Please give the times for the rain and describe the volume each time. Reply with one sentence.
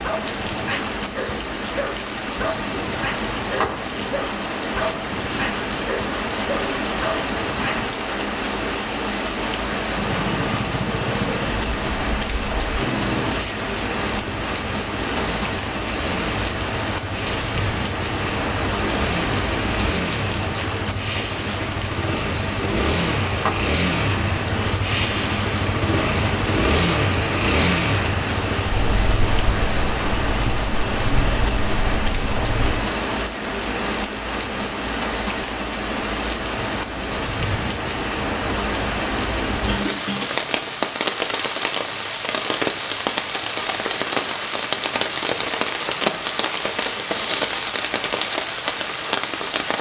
The rain can be heard from 0.0 to 49.7 s, at a steady volume.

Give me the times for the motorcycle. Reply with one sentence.
You can hear the motorcycle from 9.8 to 32.9 s.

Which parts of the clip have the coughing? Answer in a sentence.
The coughing can be heard from 39.6 to 40.4 s.